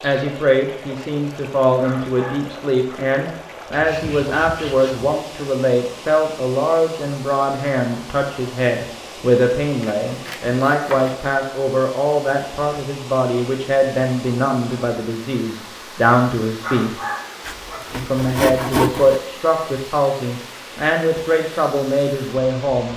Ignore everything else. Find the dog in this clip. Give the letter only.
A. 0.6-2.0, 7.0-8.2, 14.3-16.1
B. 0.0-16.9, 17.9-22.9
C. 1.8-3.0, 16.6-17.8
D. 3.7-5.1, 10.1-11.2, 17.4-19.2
C.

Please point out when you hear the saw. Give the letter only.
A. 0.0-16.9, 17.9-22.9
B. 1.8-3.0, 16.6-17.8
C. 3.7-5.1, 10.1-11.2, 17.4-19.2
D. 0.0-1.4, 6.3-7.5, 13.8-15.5
C.